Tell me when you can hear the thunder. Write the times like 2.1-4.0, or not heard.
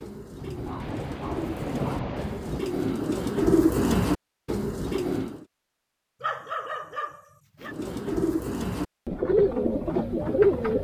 0.8-2.6.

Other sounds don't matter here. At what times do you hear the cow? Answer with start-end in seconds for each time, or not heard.
not heard.